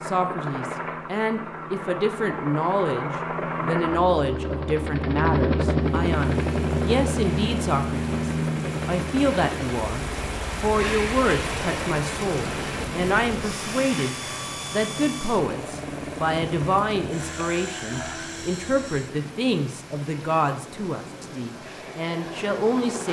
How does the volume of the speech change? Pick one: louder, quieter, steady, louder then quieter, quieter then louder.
steady.